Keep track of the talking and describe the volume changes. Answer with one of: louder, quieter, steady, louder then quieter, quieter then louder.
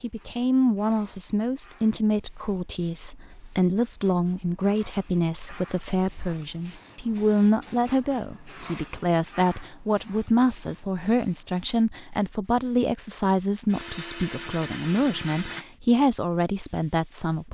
steady.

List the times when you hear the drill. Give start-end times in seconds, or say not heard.
13.7-15.7.